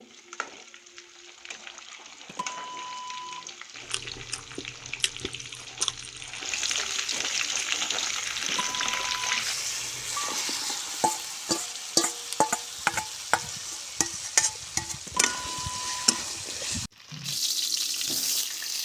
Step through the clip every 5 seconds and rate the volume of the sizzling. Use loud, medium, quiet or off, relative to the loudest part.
quiet, loud, loud, loud.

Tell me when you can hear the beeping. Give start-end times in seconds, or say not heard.
2.2-3.5, 8.4-9.3, 15.1-16.2.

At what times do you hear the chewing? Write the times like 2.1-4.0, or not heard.
3.9-10.3.